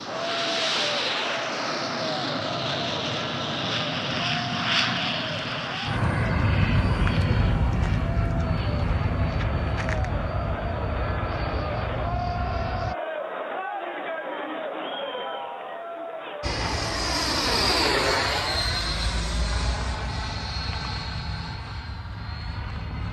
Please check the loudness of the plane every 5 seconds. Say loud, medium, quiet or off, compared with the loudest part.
loud, loud, medium, loud, medium.